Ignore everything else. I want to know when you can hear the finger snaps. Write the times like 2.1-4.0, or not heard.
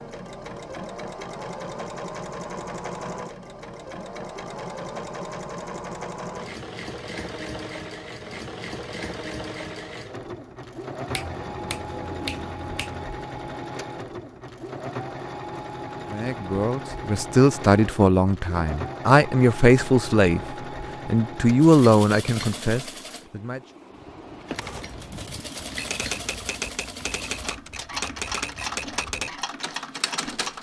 11.1-13.1.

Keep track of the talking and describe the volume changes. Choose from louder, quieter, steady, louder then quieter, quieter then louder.
steady.